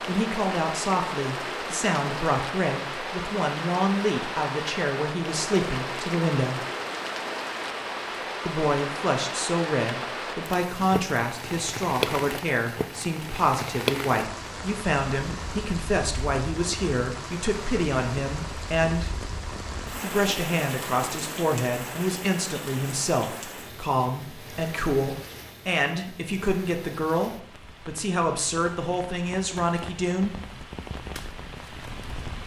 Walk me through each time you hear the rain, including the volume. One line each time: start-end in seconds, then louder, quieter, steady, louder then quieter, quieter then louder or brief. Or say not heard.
0.0-32.4 quieter.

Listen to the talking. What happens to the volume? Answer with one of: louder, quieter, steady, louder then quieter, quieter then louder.
steady.